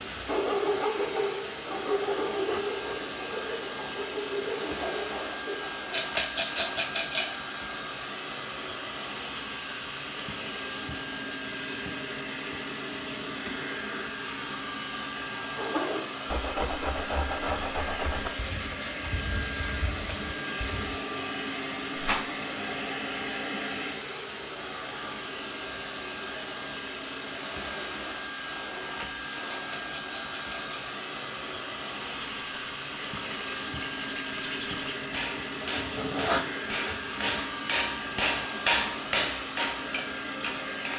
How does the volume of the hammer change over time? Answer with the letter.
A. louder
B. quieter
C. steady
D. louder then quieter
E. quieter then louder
D.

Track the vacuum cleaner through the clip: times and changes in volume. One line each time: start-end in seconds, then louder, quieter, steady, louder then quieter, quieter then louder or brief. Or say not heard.
0.0-40.9 steady.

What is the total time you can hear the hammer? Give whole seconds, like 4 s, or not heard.
6 s.